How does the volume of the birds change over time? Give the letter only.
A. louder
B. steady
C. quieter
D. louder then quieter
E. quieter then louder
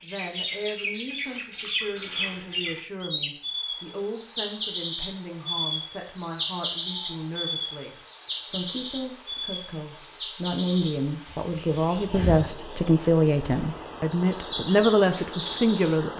D.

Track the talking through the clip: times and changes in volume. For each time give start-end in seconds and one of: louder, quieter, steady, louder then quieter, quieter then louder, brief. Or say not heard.
0.0-16.1 louder.